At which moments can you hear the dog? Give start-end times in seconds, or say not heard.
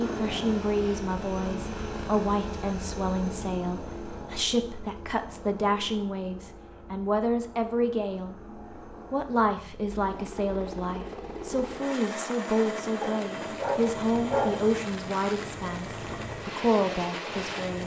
13.0-14.7.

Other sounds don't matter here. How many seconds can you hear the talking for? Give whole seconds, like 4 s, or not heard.
17 s.